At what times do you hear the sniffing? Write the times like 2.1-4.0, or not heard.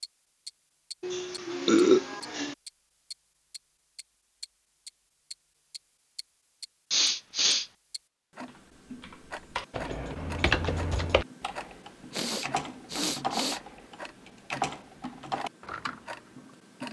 1.0-2.5, 6.9-7.7, 12.1-13.6.